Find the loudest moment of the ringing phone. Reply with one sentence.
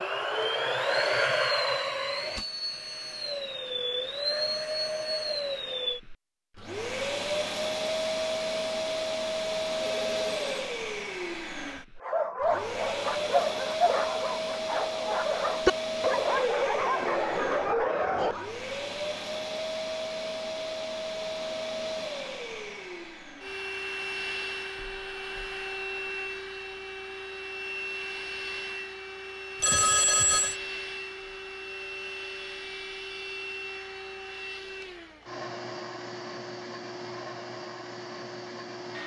The loudest moment of the ringing phone is at 30 seconds.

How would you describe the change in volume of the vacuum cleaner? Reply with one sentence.
The volume of the vacuum cleaner goes down.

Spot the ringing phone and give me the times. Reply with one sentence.
You can hear the ringing phone from 10.0 to 10.7 s and from 29.6 to 30.6 s.